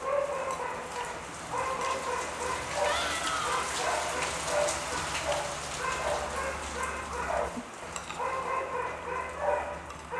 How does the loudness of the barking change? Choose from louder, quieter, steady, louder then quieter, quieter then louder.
steady.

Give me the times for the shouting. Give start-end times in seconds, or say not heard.
2.8-3.6.